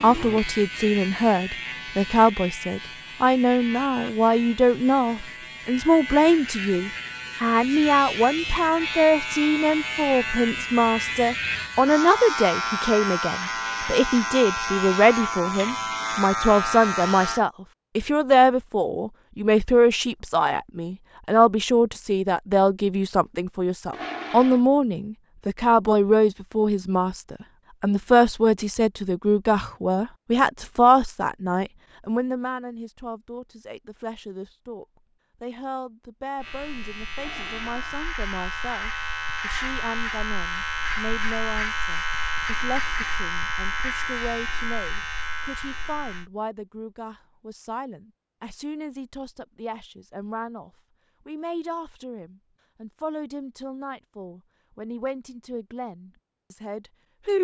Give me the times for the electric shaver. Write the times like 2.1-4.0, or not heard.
0.0-17.4, 36.4-46.3.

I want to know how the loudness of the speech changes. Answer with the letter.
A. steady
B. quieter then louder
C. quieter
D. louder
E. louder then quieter
C.